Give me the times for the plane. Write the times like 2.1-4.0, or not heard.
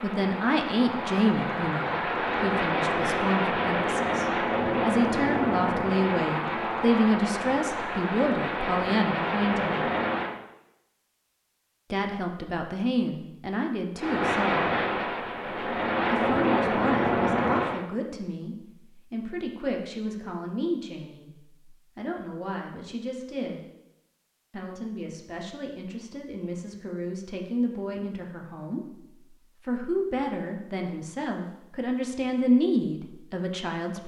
0.0-10.4, 13.9-17.9.